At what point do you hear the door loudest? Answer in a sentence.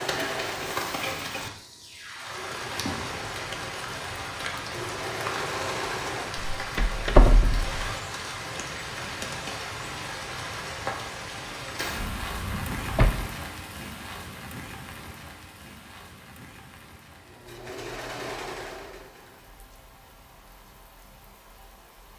The loudest moment of the door is at 7 seconds.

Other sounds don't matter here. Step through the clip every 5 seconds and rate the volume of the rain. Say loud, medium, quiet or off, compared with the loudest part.
loud, loud, loud, quiet, quiet.